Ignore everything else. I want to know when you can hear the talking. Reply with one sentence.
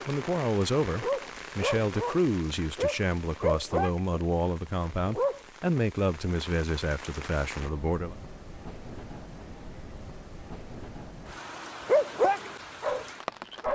You can hear the talking from 0.1 to 8.2 s.